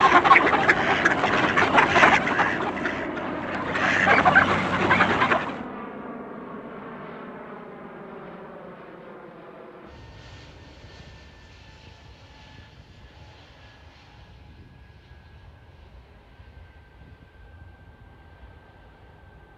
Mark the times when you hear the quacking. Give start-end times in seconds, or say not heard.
0.0-5.6.